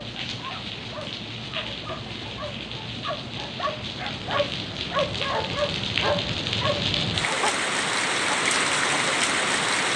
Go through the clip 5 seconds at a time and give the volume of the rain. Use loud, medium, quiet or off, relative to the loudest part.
medium, loud.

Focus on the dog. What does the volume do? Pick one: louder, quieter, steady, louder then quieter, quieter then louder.
louder.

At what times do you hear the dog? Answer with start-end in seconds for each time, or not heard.
0.0-7.6.